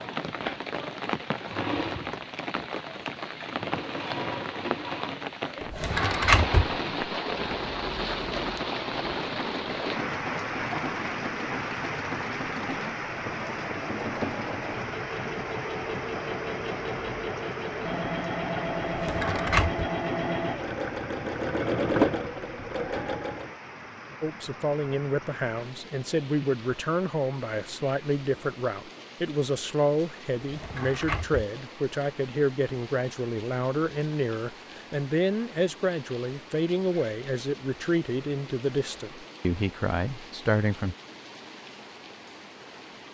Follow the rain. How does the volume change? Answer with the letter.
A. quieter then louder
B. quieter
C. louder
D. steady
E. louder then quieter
B.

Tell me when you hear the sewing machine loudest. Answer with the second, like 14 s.
22 s.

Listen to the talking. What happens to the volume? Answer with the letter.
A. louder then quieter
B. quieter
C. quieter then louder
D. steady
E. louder
D.